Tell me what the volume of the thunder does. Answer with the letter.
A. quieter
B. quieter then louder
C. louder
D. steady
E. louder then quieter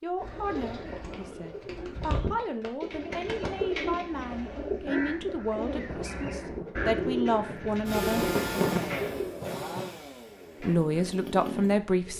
E.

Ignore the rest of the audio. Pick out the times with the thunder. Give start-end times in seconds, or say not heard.
5.8-10.0.